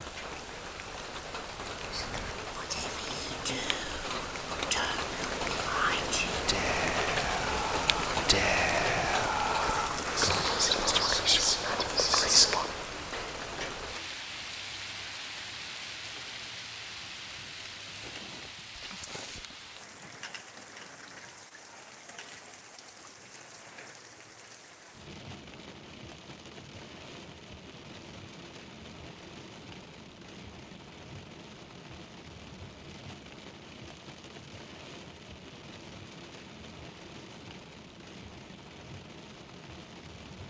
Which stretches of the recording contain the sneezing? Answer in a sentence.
The sneezing can't be heard in this clip.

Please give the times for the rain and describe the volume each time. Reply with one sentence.
You can hear the rain from 0.0 to 40.4 s, getting quieter.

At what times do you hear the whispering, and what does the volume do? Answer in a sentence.
You can hear the whispering from 1.8 to 12.8 s, getting louder.